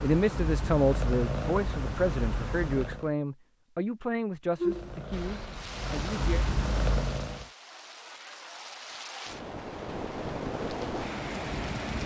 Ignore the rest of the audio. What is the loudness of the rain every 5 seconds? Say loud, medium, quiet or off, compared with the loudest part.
off, medium, loud.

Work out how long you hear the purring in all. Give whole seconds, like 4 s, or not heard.
6 s.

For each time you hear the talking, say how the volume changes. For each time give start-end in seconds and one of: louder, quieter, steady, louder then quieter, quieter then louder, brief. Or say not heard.
0.0-6.5 quieter.